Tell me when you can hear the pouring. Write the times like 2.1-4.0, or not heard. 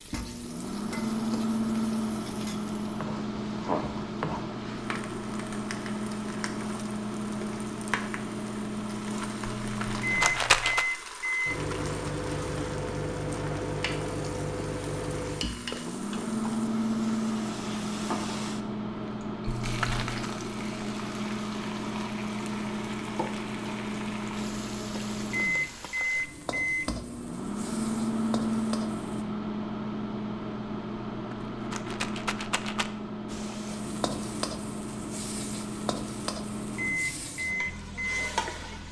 not heard.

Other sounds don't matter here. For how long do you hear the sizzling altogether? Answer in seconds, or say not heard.
35 s.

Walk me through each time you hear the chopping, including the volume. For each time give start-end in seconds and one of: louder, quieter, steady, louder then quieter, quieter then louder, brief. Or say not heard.
not heard.